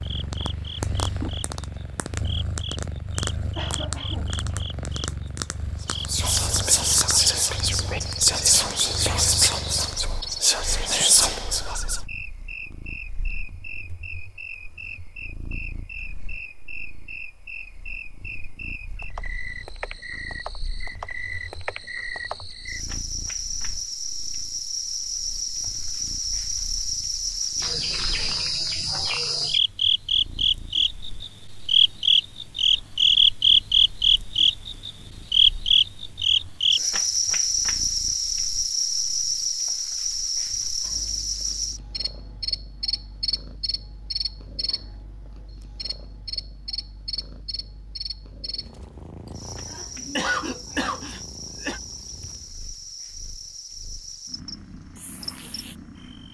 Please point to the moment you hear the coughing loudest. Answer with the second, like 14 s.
50 s.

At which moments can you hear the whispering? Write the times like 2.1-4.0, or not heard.
5.9-12.0.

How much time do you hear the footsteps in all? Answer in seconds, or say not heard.
not heard.